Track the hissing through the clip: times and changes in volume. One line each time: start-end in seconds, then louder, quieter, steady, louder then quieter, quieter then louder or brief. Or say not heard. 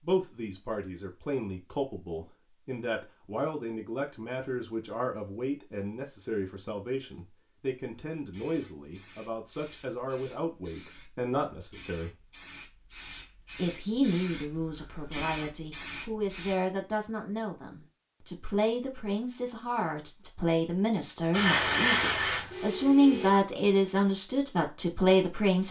8.2-16.6 louder
21.3-23.3 brief.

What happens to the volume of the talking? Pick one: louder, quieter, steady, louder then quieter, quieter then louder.
louder.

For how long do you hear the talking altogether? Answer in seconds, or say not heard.
24 s.